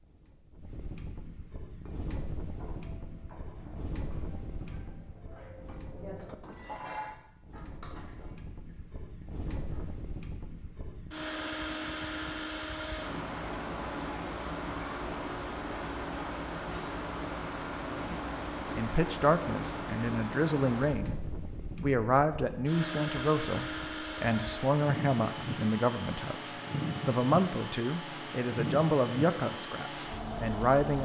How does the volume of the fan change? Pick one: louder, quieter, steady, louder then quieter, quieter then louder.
louder.